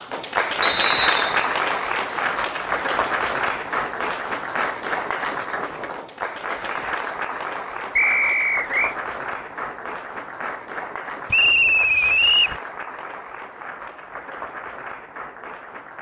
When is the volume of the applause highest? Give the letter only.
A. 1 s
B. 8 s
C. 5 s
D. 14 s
A.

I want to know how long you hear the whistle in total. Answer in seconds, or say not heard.
3 s.